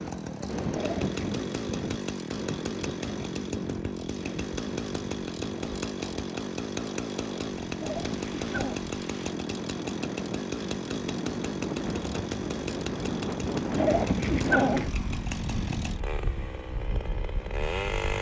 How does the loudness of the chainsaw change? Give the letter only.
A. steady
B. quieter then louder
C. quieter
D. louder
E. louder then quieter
A.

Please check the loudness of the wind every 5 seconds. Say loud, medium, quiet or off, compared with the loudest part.
loud, medium, loud, medium.